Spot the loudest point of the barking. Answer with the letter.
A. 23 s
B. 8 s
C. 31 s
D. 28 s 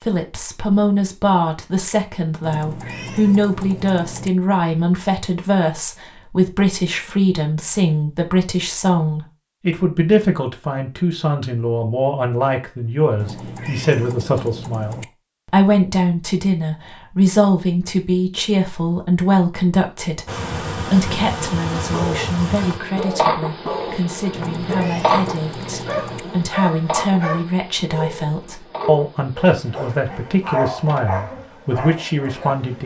C.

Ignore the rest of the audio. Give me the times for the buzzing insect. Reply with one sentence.
You can hear the buzzing insect from 20.2 to 32.8 s.